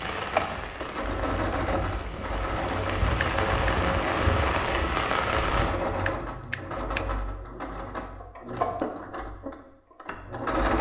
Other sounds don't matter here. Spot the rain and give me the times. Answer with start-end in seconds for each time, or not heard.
0.0-5.7.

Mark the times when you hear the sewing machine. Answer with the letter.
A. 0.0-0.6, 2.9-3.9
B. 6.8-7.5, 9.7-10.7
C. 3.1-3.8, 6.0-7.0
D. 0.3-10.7
D.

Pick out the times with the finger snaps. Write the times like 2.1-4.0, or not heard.
3.1-3.8, 6.0-7.0.